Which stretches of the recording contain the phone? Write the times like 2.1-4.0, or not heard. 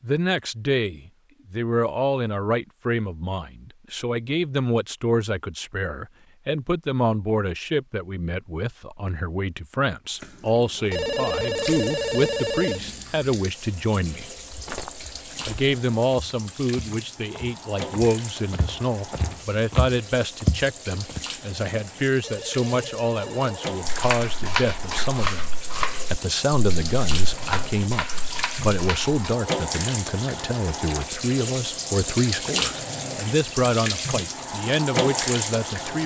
10.9-13.1, 22.2-23.7.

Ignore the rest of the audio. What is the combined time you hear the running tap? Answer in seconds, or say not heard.
26 s.